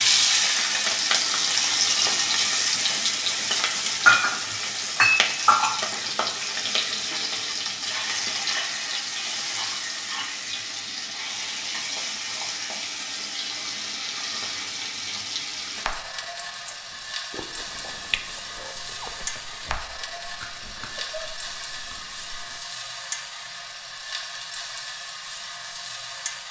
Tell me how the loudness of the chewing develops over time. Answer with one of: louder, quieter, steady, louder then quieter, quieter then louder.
louder then quieter.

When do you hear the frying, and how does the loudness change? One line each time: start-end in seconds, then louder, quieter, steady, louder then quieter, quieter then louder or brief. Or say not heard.
0.0-26.4 quieter.